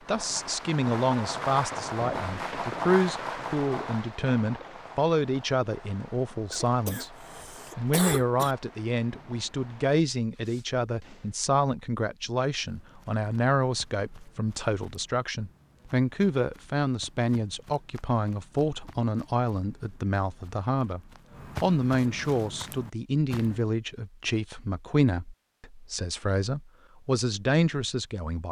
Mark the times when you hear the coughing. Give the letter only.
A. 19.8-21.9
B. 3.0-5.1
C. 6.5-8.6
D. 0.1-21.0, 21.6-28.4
C.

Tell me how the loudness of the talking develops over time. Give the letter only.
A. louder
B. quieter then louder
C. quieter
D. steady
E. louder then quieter
D.